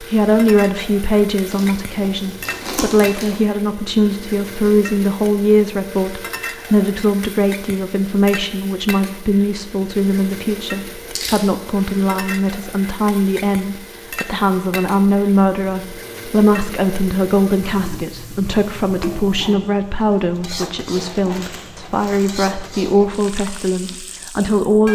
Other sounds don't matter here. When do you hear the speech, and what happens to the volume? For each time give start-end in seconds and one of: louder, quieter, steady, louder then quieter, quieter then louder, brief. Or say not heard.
0.0-24.9 steady.